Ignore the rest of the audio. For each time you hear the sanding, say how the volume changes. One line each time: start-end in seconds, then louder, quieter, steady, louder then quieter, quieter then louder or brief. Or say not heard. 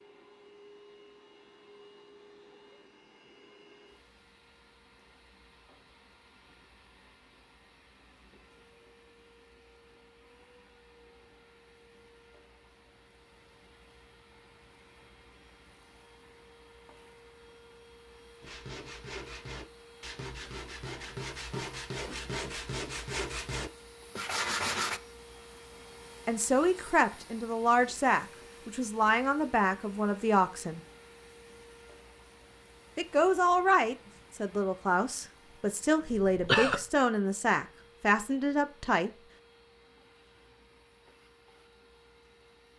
18.4-25.0 louder.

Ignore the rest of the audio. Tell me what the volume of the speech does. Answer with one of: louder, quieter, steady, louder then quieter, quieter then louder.
steady.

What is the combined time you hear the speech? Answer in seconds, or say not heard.
11 s.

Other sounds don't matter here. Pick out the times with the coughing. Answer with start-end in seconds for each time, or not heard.
36.0-36.9.